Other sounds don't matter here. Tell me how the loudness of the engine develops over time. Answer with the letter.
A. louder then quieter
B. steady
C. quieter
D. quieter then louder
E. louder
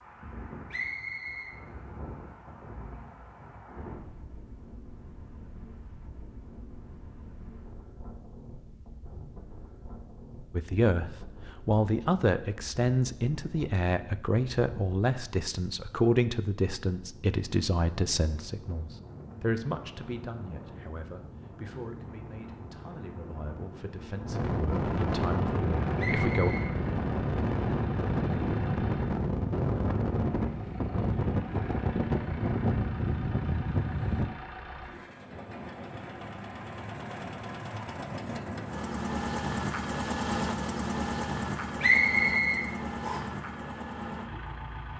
E.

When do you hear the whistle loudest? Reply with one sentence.
The loudest moment of the whistle is at 42 seconds.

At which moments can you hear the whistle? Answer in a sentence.
You can hear the whistle from 0.7 to 1.6 s, from 25.9 to 26.7 s and from 41.8 to 43.2 s.